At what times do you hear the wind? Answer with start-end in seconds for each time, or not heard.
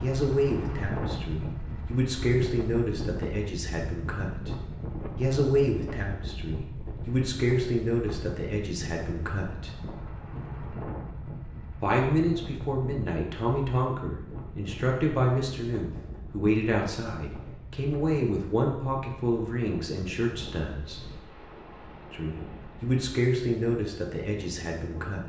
0.0-25.2.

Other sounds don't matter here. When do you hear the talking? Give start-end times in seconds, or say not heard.
0.0-4.5, 5.2-9.7, 11.8-21.1, 22.1-25.2.